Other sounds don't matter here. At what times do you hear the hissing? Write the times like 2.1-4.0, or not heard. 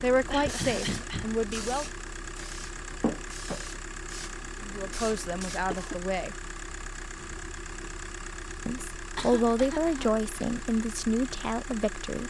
0.1-6.0.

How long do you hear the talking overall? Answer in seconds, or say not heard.
7 s.